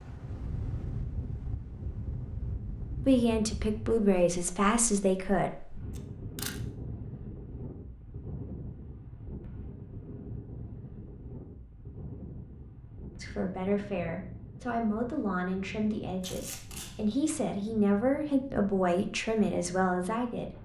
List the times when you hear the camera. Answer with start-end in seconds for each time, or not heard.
6.0-6.6, 16.2-17.2.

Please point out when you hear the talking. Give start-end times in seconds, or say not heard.
3.0-5.5, 13.2-20.6.